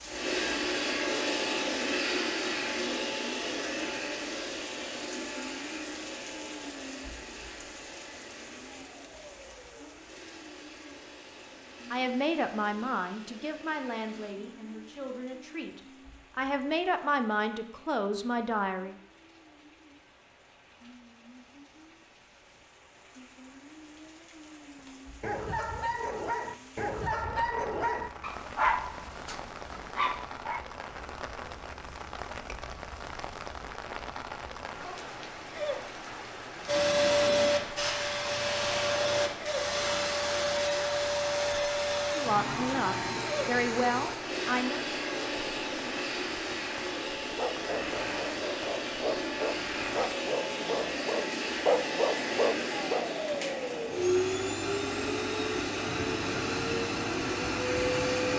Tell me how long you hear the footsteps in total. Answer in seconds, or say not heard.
not heard.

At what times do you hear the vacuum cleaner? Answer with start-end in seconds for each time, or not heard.
0.0-14.3, 36.6-58.3.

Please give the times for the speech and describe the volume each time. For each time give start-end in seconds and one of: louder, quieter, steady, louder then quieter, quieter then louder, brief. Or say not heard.
11.9-18.9 quieter then louder
42.1-44.9 brief.